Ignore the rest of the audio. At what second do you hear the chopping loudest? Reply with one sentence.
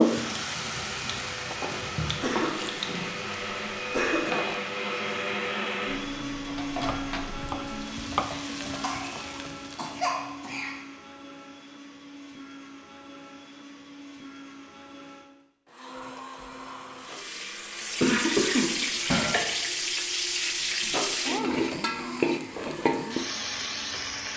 The volume of the chopping peaks at 8 seconds.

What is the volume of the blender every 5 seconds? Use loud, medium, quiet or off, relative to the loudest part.
loud, loud, medium, medium, medium.